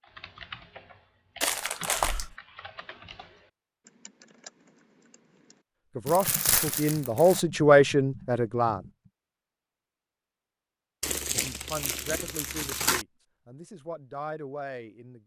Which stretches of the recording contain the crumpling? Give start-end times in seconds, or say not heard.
1.4-2.4, 6.0-7.5, 11.0-13.1.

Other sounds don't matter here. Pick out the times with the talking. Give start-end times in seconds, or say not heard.
6.0-8.8, 11.3-15.2.